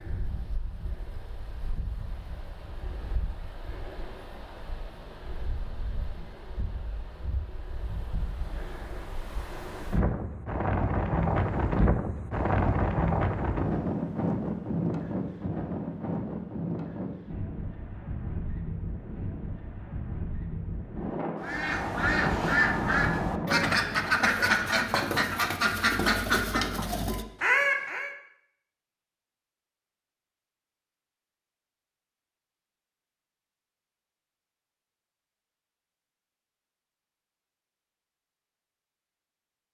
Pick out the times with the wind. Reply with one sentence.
The wind can be heard from 0.0 to 24.4 s.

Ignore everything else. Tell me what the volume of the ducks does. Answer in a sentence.
The loudness of the ducks stays about the same.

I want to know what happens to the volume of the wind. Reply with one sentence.
The loudness of the wind goes up, then down.